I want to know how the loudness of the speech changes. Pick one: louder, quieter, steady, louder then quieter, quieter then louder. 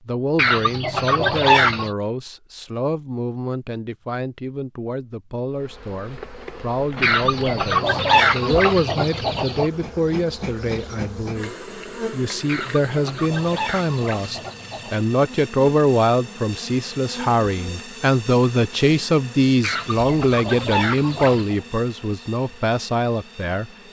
louder.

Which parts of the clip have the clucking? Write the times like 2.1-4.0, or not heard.
0.3-1.9, 7.0-9.7, 12.4-14.9, 19.6-21.6.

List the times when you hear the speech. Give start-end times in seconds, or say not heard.
0.1-23.7.